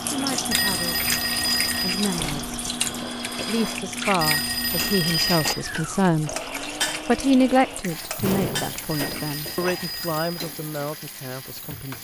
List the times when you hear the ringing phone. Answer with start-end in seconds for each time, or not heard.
0.5-2.1, 4.2-5.6, 8.9-10.3.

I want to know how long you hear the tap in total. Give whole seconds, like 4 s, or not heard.
12 s.